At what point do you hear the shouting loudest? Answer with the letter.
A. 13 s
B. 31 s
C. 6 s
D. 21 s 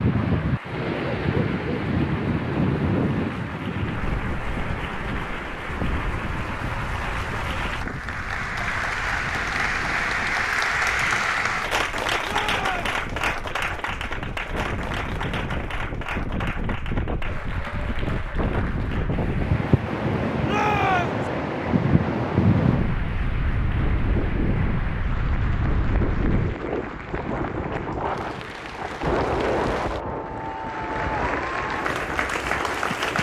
D.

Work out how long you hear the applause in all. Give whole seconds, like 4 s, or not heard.
33 s.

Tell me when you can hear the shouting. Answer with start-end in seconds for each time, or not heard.
12.2-12.9, 20.4-21.2.